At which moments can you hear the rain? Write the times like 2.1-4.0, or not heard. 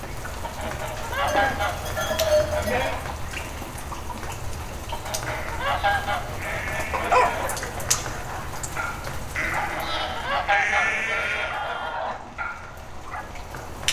0.0-13.8.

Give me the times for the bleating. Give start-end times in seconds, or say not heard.
1.2-3.0, 5.2-7.4, 9.3-12.0.